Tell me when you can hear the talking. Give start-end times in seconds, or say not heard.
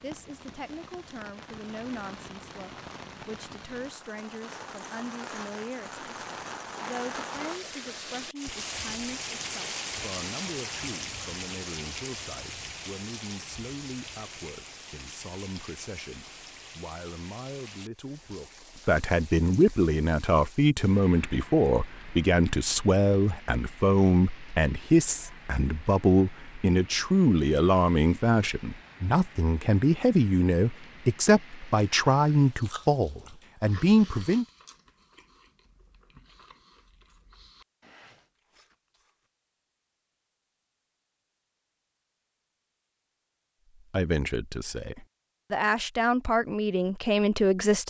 0.0-34.5, 43.9-47.8.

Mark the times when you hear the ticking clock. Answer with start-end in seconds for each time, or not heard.
not heard.